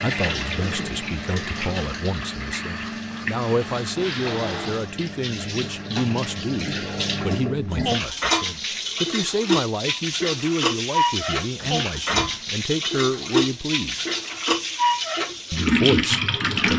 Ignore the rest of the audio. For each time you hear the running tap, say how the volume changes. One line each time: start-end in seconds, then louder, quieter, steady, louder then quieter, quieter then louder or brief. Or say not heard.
0.0-16.7 louder.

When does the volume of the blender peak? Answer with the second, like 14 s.
4 s.